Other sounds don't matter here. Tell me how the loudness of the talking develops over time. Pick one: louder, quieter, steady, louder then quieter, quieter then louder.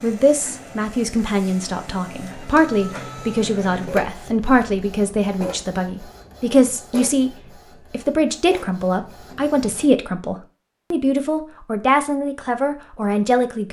steady.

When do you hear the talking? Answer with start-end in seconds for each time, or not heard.
0.0-13.6.